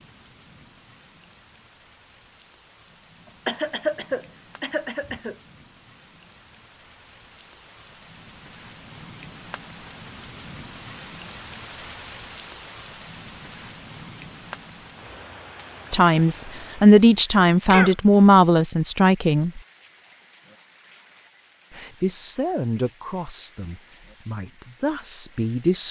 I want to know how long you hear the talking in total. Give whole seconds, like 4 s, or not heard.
8 s.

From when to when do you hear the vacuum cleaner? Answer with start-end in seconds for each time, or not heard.
not heard.